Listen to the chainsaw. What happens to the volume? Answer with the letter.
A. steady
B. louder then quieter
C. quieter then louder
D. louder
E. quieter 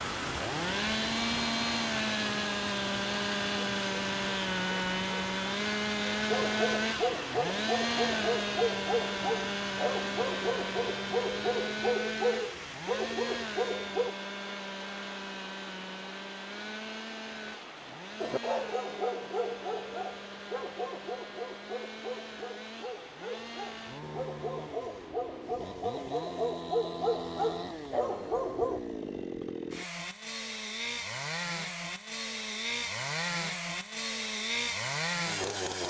C.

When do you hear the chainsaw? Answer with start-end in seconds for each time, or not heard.
0.0-35.8.